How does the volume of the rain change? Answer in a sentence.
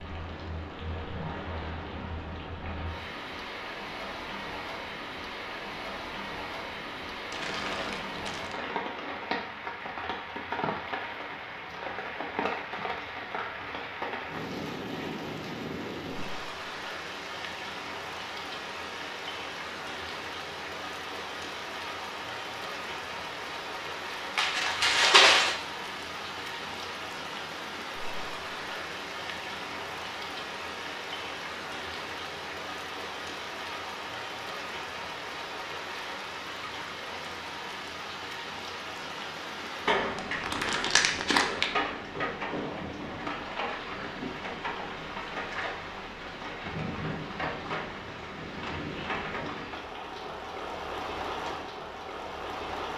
The loudness of the rain stays about the same.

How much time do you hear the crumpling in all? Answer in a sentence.
The crumpling can be heard for 4 seconds in total.